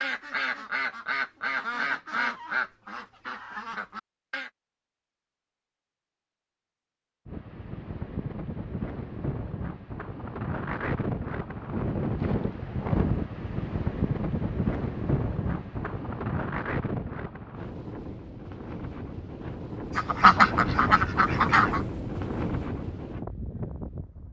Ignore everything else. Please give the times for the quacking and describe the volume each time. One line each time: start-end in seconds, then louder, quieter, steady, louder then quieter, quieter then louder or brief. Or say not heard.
0.0-4.5 quieter
19.9-21.9 brief.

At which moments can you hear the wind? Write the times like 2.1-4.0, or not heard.
7.2-24.2.